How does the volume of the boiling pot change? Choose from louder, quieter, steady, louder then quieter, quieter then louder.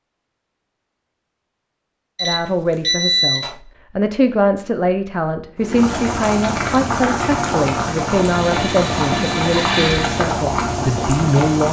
steady.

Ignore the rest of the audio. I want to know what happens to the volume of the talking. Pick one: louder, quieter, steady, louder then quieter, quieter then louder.
steady.